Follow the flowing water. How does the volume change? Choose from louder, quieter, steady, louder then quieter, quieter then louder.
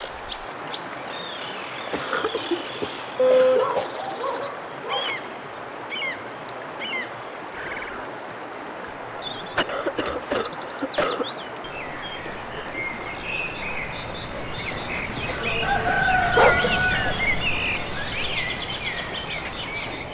steady.